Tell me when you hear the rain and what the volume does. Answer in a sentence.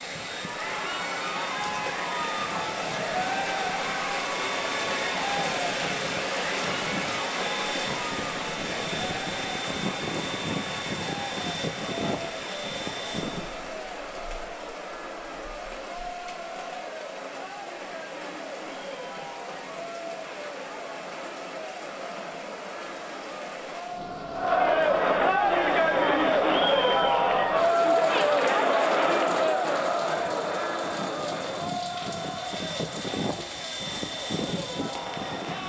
You can hear the rain from 0.0 to 35.6 s, getting quieter.